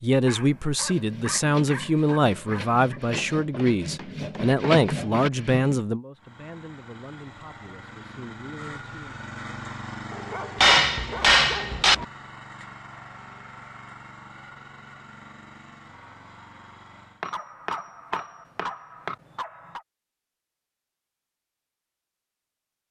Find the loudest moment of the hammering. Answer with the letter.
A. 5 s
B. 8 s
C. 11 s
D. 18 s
C.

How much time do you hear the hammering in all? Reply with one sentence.
You can hear the hammering for 5 seconds altogether.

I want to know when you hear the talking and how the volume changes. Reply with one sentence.
The talking can be heard from 0.0 to 9.2 s, getting quieter.